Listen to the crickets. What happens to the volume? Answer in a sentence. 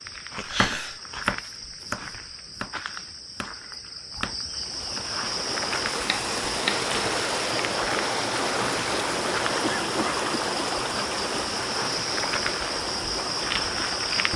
The volume of the crickets goes up.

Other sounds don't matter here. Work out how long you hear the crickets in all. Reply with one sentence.
The crickets can be heard for 14 seconds in total.